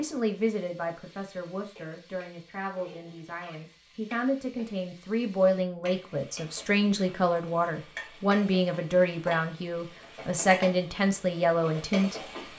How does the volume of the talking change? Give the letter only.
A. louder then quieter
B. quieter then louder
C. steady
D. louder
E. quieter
D.